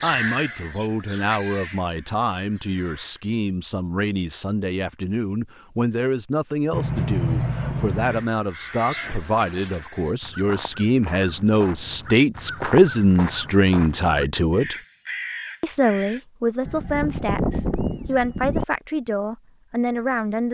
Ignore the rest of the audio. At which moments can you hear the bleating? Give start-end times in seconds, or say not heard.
6.7-8.2, 16.6-18.6.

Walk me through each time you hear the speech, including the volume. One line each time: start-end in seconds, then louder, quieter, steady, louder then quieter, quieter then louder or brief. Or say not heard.
0.0-14.8 louder
15.6-20.4 steady.